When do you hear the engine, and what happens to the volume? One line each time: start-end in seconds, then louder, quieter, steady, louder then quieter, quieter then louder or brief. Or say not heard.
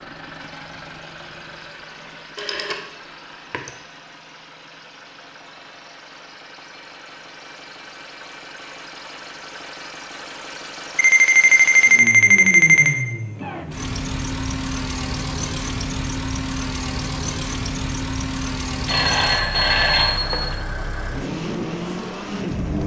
0.0-22.8 louder.